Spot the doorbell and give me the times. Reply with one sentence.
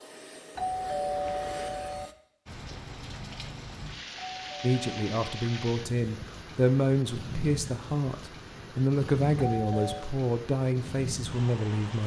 The doorbell can be heard from 0.6 to 2.1 s, from 4.2 to 5.7 s and from 9.3 to 10.1 s.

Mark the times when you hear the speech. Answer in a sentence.
The speech can be heard from 4.6 to 12.0 s.